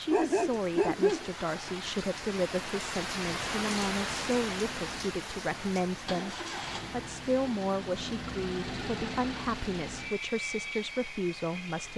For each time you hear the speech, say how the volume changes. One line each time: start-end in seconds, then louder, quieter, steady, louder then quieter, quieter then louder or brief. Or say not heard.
0.0-11.9 steady.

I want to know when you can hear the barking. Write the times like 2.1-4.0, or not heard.
0.1-1.7.